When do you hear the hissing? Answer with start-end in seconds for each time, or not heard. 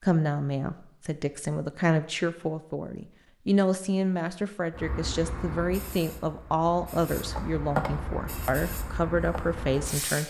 4.7-10.2.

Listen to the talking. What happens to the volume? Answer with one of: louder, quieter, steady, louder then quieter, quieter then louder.
steady.